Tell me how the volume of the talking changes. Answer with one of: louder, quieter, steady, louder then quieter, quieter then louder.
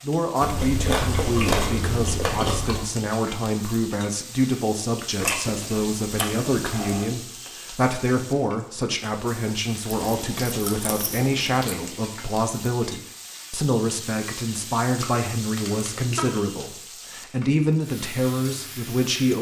steady.